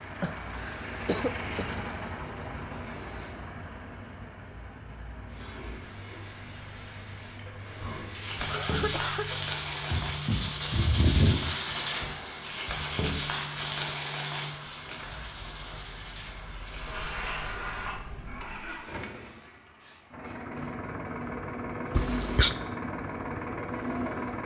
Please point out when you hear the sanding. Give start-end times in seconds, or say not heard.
7.8-17.2.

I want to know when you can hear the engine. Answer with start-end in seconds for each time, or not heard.
0.0-8.6, 14.9-24.4.